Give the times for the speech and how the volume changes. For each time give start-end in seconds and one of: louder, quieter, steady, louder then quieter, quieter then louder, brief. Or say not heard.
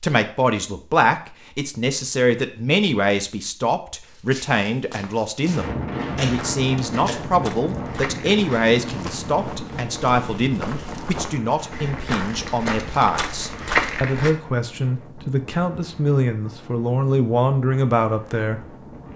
0.0-18.6 steady.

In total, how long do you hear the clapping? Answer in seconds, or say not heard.
not heard.